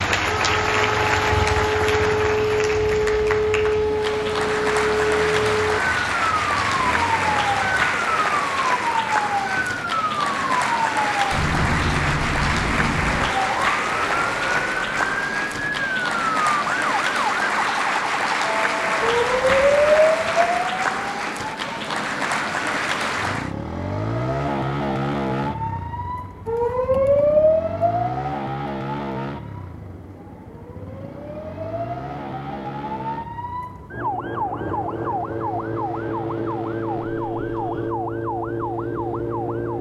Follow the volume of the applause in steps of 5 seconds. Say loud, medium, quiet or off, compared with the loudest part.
loud, loud, loud, loud, loud, off, off, off.